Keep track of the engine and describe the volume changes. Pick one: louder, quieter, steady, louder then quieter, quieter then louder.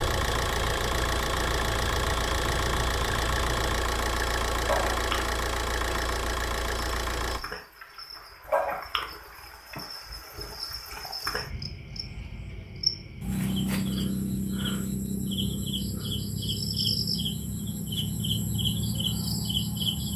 steady.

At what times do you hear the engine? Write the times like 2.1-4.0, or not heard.
0.0-7.4.